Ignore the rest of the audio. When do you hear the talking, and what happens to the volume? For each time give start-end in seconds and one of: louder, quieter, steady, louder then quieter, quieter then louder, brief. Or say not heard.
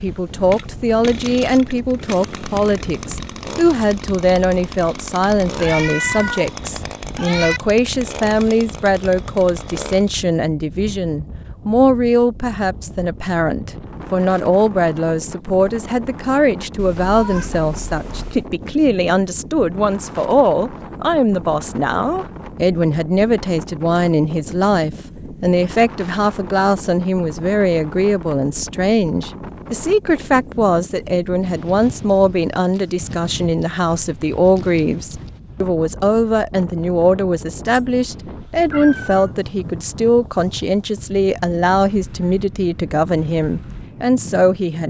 0.0-44.8 steady.